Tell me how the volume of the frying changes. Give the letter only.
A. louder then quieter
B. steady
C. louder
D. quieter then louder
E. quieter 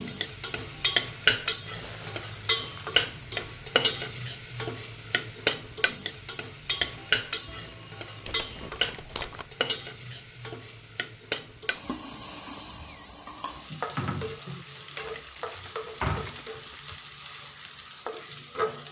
E.